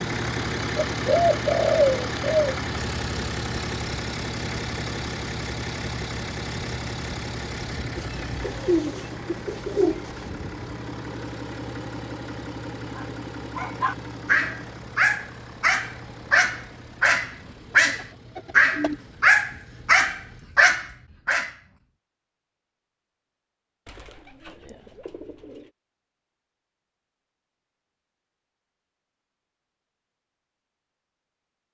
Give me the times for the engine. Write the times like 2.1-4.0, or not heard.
0.0-20.4.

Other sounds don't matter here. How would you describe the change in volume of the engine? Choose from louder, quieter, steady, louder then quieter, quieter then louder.
quieter.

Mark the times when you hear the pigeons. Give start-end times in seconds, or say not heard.
0.8-2.5, 8.0-10.2, 17.8-18.9, 23.9-25.7.